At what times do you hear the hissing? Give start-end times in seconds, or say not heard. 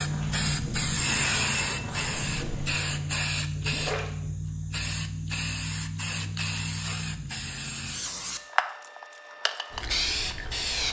0.0-10.8.